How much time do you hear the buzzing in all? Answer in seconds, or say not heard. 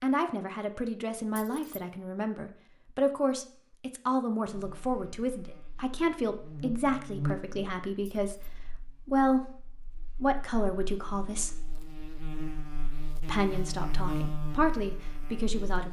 11 s.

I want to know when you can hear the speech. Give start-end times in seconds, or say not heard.
0.0-11.6, 13.2-15.8.